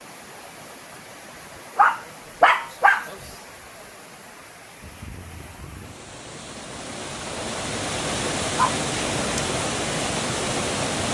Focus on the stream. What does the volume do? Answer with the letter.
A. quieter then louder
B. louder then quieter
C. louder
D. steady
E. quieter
C.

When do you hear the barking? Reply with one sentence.
The barking can be heard from 1.8 to 3.1 s and from 8.5 to 9.4 s.